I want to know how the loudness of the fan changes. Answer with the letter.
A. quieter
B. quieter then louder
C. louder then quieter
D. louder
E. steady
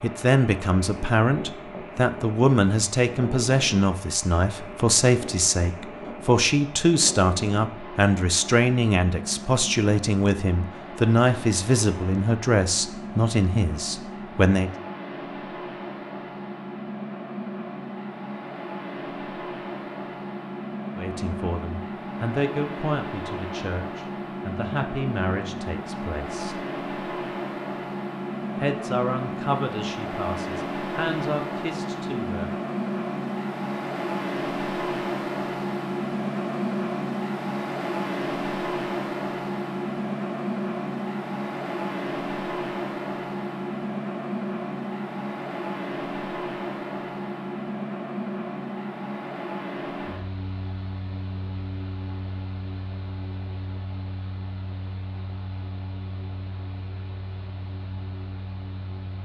C.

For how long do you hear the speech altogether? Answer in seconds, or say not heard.
24 s.